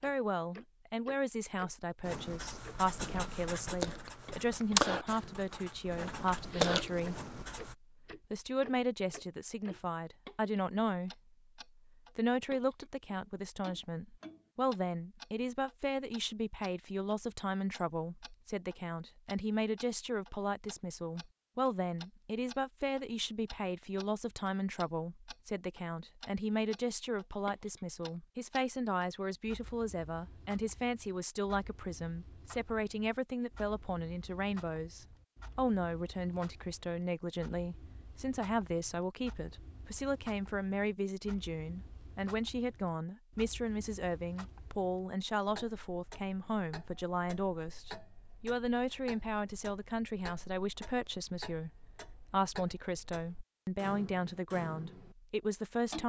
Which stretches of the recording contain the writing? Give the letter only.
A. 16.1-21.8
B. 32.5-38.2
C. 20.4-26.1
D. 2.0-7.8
D.